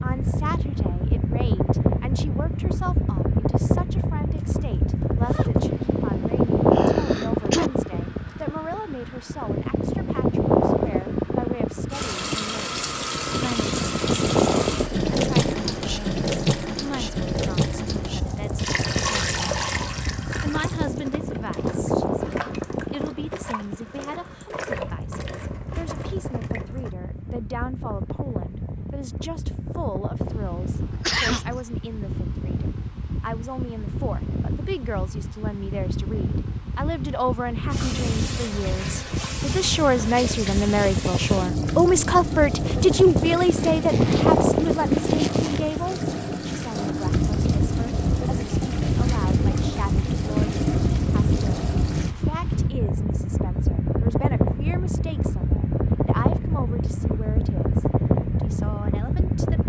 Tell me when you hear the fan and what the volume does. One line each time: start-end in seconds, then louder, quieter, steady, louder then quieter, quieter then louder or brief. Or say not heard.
0.0-59.6 quieter then louder.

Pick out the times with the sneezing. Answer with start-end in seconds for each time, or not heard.
6.7-7.7, 30.8-31.6.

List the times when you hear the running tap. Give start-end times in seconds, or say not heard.
11.9-26.9, 37.7-52.1.